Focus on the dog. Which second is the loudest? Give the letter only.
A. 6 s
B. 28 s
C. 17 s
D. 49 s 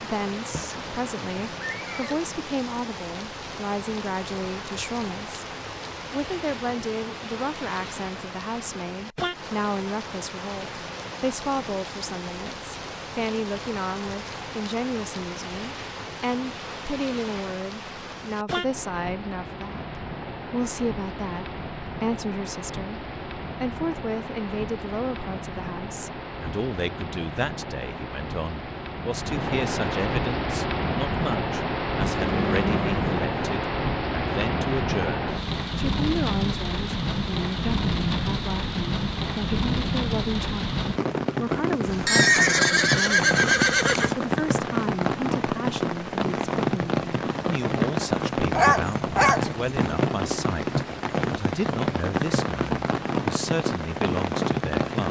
D.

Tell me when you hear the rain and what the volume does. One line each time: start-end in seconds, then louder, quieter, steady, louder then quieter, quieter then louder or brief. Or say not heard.
0.0-55.0 louder.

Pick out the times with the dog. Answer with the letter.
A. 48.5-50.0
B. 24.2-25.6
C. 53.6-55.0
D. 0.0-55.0
A.